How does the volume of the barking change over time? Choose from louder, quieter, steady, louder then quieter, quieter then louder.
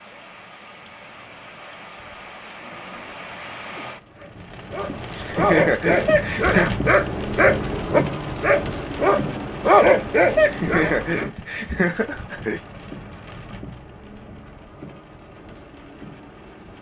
louder.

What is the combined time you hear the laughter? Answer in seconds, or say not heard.
4 s.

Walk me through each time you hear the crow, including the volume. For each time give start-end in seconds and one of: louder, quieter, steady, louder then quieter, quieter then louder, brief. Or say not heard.
not heard.